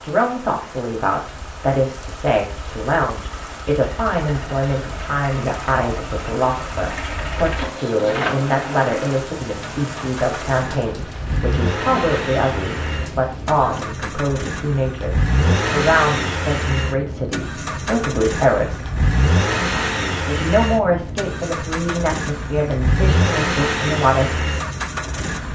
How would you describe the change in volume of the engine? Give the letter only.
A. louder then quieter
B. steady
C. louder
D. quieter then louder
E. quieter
C.